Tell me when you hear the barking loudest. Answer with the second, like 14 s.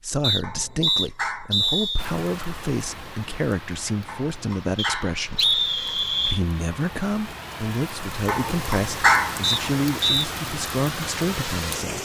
9 s.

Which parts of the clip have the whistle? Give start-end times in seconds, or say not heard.
0.2-2.0, 4.8-6.4, 9.4-10.3.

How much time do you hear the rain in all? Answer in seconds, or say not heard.
10 s.